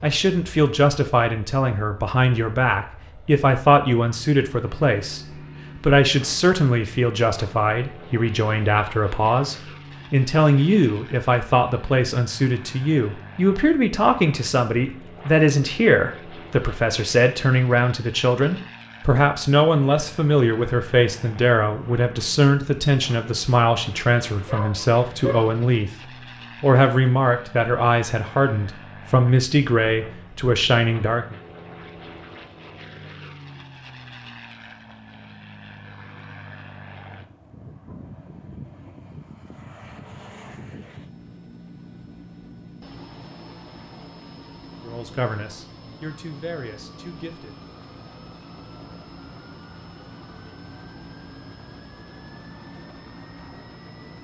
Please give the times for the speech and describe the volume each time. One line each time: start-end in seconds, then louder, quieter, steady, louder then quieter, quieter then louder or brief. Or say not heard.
0.0-25.9 steady
26.6-31.4 steady
44.7-47.5 brief.